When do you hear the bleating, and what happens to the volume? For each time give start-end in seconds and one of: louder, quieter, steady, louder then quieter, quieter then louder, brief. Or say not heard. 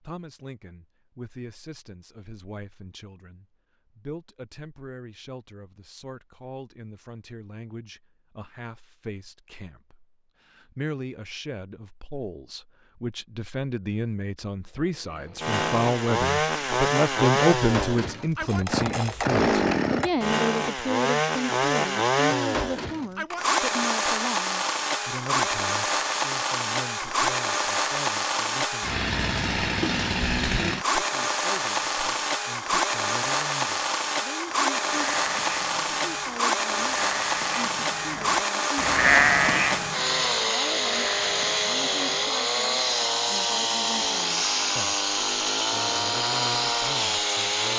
34.9-42.4 louder then quieter.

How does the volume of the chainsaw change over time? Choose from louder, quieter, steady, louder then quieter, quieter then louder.
steady.